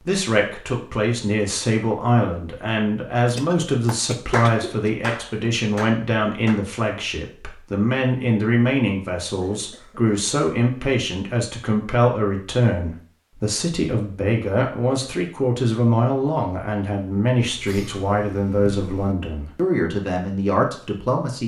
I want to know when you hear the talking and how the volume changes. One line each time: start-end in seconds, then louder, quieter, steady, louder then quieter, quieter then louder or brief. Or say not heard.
0.0-21.4 steady.